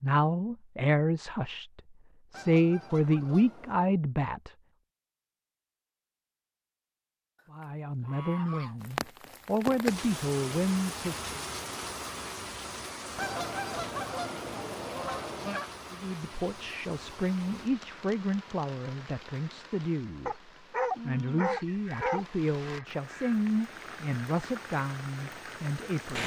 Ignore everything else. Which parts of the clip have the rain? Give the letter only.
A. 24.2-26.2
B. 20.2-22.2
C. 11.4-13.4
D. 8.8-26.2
D.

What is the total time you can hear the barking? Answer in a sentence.
You can hear the barking for 2 seconds altogether.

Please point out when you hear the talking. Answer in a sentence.
The talking can be heard from 0.0 to 4.5 s, from 7.5 to 11.3 s and from 15.9 to 26.2 s.